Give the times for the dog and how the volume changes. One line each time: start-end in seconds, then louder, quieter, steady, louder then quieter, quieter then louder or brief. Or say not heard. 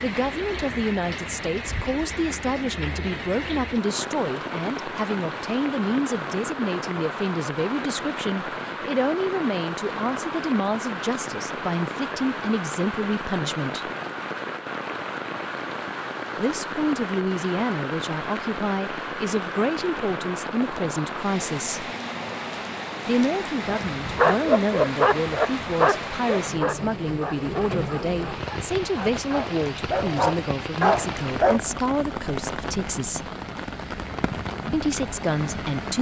23.6-31.6 quieter then louder.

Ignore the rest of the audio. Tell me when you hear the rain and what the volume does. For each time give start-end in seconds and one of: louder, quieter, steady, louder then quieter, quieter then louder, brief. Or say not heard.
0.0-35.9 steady.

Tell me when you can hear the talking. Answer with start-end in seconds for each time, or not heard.
0.0-13.9, 16.4-21.9, 23.1-33.3, 34.7-35.9.